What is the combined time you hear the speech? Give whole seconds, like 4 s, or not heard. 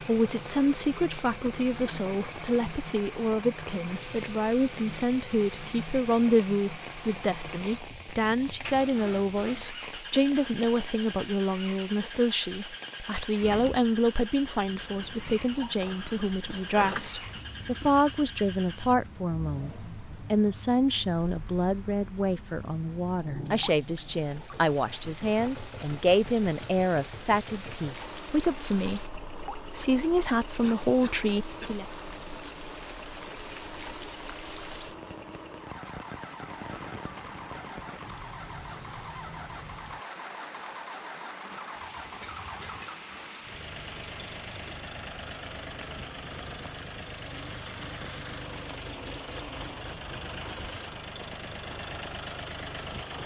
32 s.